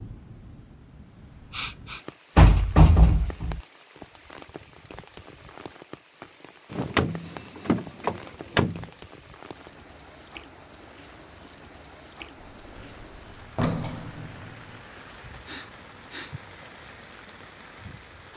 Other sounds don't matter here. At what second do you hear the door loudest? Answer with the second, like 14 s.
3 s.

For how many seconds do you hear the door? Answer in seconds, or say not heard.
5 s.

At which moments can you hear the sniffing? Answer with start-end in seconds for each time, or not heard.
1.5-2.0, 15.4-16.4.